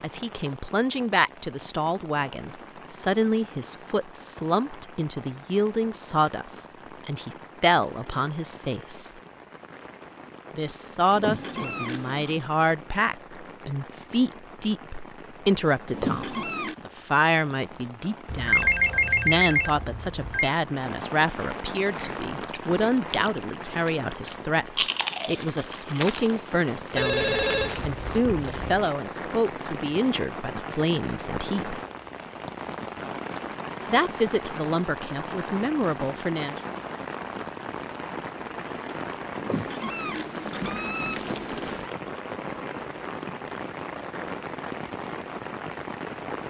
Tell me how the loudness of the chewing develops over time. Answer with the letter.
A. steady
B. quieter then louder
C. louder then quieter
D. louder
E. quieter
C.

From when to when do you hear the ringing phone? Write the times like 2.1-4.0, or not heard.
18.2-20.6, 26.9-28.9.